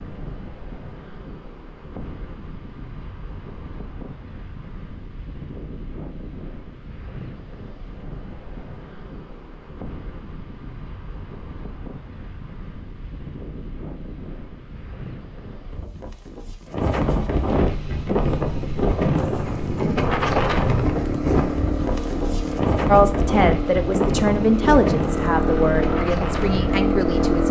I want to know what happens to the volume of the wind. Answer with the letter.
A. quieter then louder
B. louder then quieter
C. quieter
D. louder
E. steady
D.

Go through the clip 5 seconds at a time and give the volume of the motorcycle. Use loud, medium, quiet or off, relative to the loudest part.
off, off, off, medium, medium, loud.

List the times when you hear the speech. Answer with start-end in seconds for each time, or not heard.
22.9-27.4.